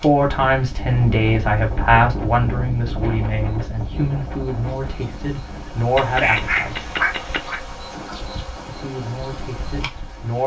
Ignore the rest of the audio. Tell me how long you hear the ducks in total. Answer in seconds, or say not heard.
2 s.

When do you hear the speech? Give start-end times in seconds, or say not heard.
0.0-6.9, 8.7-10.4.